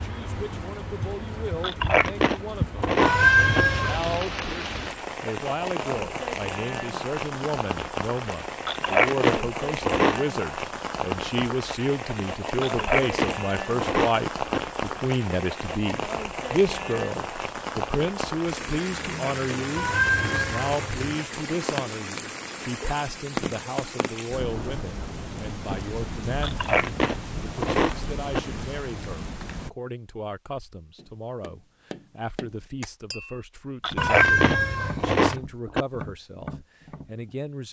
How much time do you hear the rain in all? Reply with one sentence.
The rain can be heard for 30 seconds in total.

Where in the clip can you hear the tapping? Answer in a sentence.
You can hear the tapping from 30.8 to 37.4 s.